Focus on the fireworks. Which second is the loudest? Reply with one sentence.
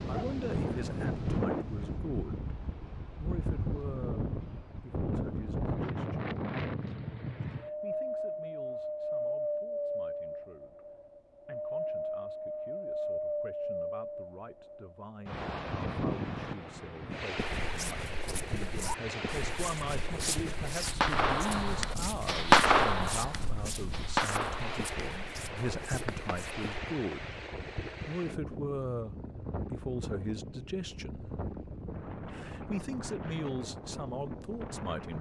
The loudest moment of the fireworks is at 23 seconds.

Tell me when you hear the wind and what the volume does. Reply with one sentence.
The wind can be heard from 0.0 to 35.1 s, getting quieter.